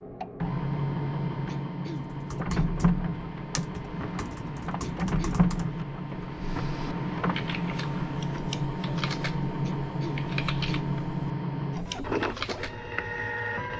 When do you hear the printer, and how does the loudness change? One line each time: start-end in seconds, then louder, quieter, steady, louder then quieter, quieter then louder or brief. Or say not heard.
0.0-13.7 steady.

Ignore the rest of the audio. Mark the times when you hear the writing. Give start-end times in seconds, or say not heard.
not heard.